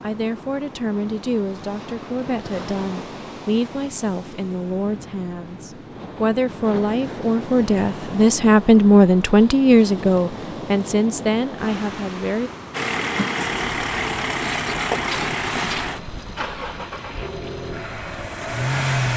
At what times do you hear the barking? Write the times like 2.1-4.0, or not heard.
not heard.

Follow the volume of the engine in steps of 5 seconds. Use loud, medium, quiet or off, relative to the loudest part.
off, off, loud, loud.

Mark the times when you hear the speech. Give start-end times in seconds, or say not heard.
0.0-12.5.